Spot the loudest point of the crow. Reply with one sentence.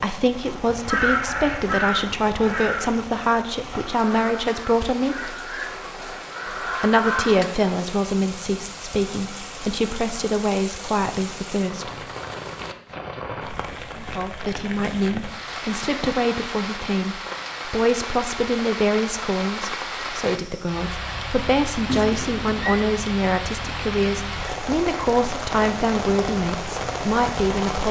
The volume of the crow peaks at 1 second.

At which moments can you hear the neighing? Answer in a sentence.
You can hear the neighing from 21.9 to 22.9 s.